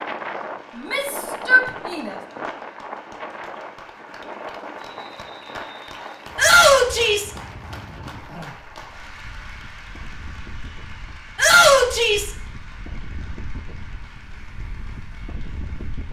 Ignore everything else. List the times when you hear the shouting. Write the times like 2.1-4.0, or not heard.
0.8-2.1, 6.3-7.3, 11.3-12.3.